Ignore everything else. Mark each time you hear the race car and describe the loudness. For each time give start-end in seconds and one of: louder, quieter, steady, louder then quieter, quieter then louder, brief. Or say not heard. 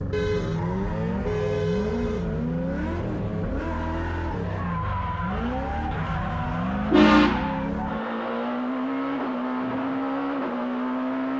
0.0-11.3 steady.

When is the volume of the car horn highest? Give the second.
7 s.